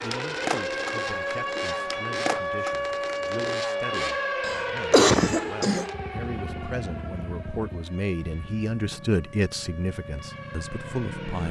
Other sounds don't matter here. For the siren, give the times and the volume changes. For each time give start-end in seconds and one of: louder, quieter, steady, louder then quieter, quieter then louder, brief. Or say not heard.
0.0-11.4 quieter.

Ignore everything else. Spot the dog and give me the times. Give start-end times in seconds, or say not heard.
not heard.